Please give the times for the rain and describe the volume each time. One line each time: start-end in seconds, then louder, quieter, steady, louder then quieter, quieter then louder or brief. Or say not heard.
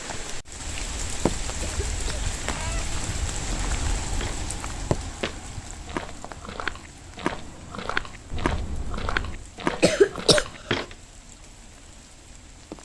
0.0-12.7 quieter.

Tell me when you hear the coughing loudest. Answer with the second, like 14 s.
10 s.